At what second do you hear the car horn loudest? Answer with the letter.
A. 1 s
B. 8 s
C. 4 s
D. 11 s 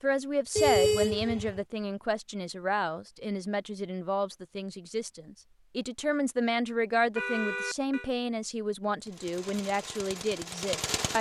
A.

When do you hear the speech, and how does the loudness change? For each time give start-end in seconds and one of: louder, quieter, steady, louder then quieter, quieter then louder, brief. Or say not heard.
0.0-11.1 steady.